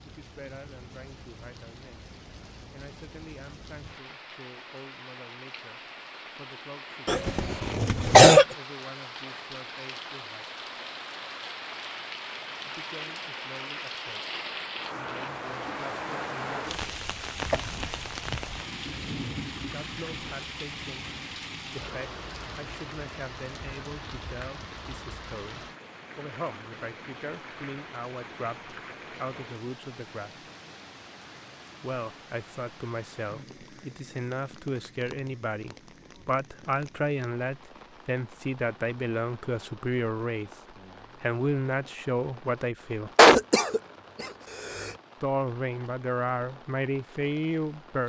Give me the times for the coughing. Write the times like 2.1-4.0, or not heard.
7.0-8.4, 17.5-18.6, 43.1-44.9.